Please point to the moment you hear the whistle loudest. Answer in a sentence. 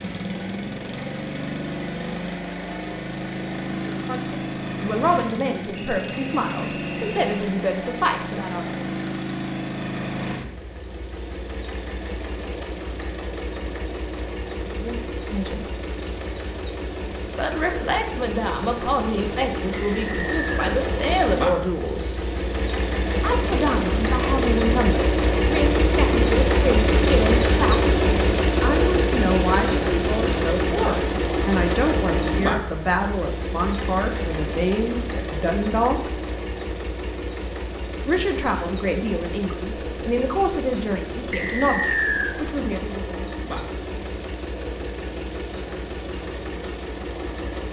The volume of the whistle peaks at 42 seconds.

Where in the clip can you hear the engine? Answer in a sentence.
You can hear the engine from 0.0 to 47.6 s.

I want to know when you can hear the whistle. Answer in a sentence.
You can hear the whistle from 5.8 to 7.4 s, from 19.9 to 20.7 s and from 41.3 to 42.4 s.